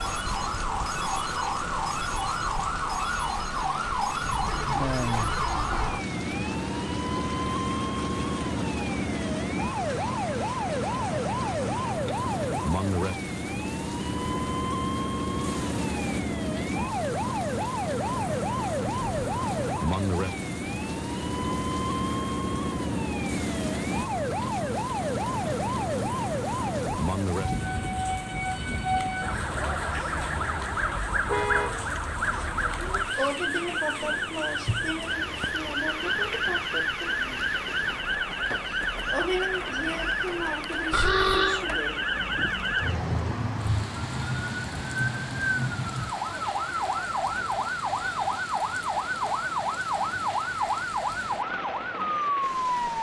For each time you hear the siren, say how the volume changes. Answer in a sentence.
The siren can be heard from 0.0 to 52.9 s, at a steady volume.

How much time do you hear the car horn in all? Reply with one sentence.
The car horn can be heard for 3 seconds in total.